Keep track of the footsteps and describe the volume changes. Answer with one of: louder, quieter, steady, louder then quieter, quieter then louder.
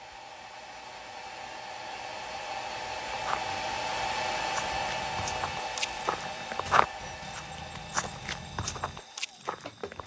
louder then quieter.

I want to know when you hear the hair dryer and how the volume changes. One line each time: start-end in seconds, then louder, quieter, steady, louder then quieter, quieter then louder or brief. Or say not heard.
0.0-10.0 louder then quieter.